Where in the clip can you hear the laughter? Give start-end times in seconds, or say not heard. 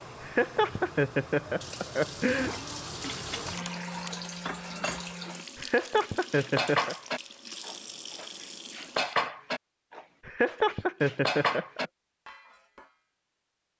0.2-2.5, 5.5-7.0, 10.2-11.9.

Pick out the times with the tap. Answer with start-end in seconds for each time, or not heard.
0.0-9.2.